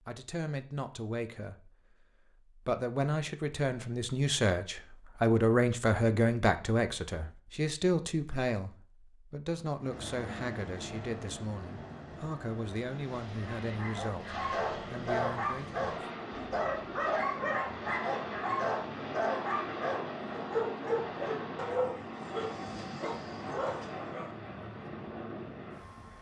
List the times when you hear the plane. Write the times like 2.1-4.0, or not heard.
9.8-26.1.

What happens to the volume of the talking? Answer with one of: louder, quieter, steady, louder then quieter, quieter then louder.
louder then quieter.